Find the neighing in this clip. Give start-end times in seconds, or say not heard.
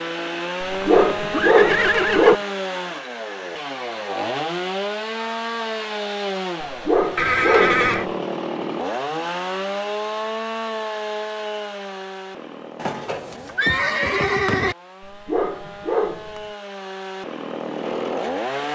0.7-2.5, 7.2-8.1, 12.8-14.8.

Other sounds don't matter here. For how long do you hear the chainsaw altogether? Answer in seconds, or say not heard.
19 s.